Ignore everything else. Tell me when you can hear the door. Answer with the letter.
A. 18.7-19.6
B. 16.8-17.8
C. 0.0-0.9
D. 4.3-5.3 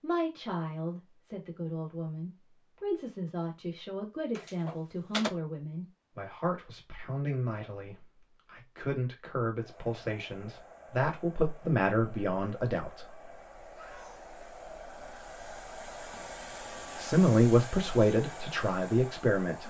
D.